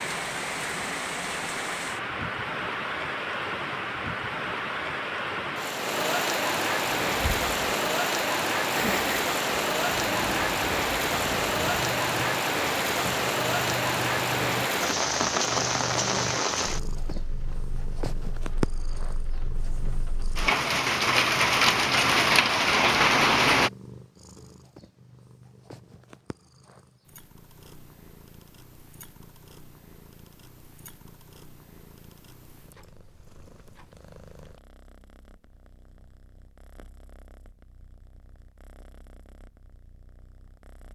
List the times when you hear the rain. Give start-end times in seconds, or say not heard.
0.0-23.7.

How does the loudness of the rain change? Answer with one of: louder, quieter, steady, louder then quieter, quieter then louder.
louder.